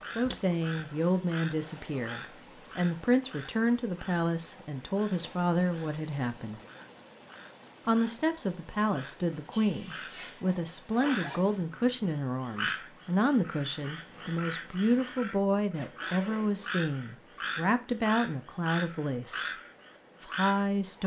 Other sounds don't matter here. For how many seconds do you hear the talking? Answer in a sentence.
The talking can be heard for 19 seconds in total.